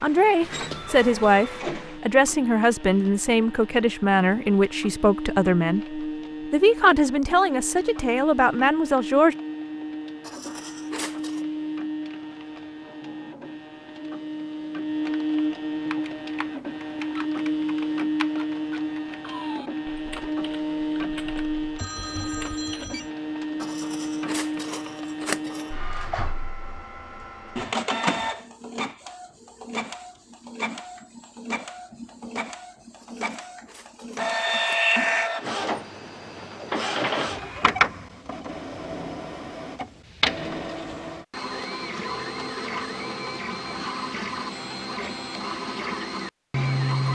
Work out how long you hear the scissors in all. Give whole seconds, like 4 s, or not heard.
5 s.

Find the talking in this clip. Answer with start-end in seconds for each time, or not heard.
0.0-9.3.